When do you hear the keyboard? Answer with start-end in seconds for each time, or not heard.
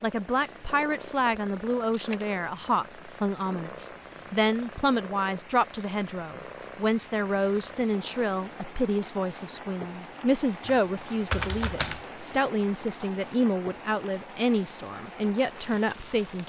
10.7-12.1.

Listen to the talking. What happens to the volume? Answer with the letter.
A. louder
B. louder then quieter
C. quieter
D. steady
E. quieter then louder
D.